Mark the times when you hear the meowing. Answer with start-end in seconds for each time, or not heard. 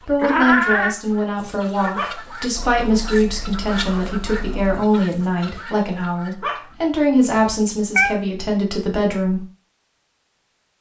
0.2-0.9, 7.3-8.2.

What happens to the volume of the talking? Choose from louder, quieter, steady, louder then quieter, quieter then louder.
steady.